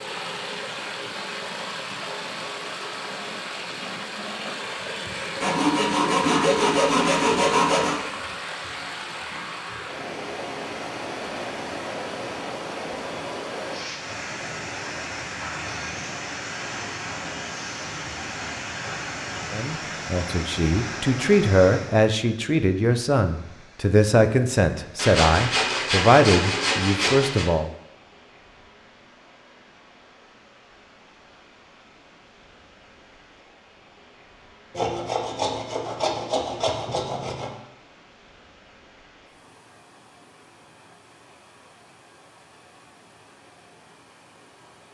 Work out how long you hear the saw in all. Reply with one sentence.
You can hear the saw for 8 seconds altogether.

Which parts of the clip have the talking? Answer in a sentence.
You can hear the talking from 19.5 to 27.7 s.